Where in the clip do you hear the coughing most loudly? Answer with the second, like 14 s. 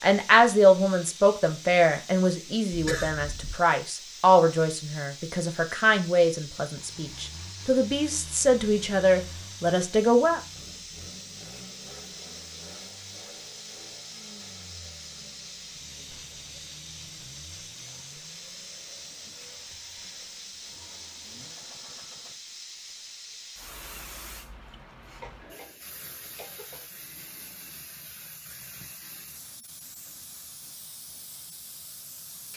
3 s.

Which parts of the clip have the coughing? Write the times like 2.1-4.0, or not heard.
2.7-3.5, 25.2-26.9.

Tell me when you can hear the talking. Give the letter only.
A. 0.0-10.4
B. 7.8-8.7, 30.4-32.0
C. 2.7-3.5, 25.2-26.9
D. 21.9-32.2
A.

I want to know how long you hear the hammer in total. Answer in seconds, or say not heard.
not heard.